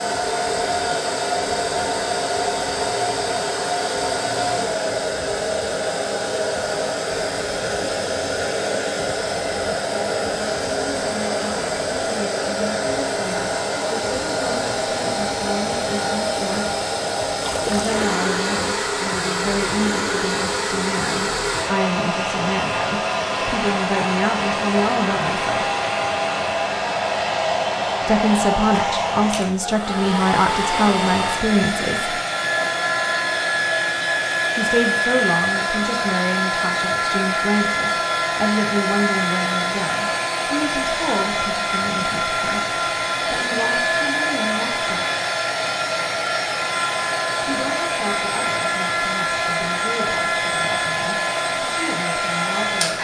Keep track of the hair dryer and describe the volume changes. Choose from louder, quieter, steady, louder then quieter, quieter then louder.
steady.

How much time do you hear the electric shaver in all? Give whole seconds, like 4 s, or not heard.
not heard.